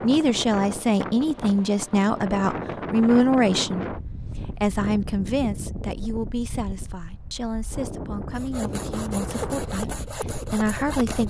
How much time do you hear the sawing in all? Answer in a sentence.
The sawing can be heard for 3 seconds in total.